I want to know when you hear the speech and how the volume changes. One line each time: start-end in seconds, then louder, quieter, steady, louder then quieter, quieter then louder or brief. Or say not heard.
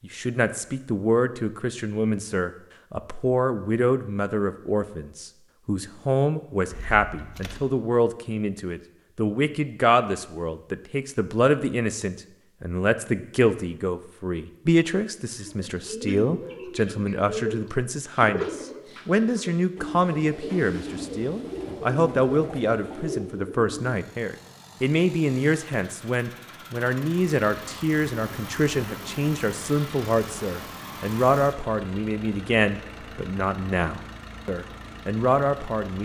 0.0-36.0 steady.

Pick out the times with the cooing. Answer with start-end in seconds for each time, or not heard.
15.4-23.9.